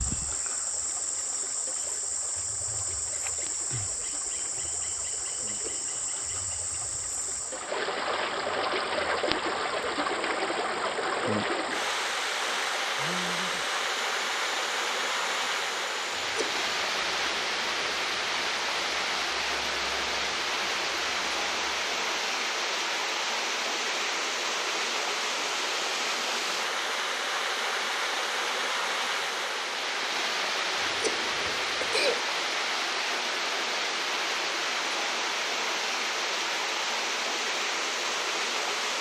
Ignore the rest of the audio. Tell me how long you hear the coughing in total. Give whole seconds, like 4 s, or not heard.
3 s.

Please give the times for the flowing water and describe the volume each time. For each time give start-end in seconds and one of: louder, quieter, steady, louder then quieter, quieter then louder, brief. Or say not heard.
0.0-38.9 louder.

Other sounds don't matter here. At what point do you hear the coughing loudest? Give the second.
32 s.